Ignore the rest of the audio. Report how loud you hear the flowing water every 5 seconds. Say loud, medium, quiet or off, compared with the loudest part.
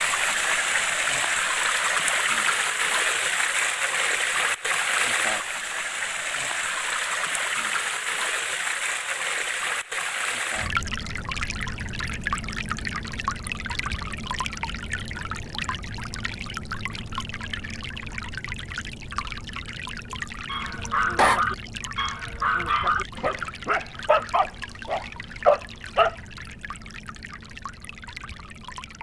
loud, loud, medium, medium, quiet, quiet.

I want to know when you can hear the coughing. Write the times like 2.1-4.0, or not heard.
20.7-21.4.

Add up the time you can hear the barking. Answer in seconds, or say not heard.
6 s.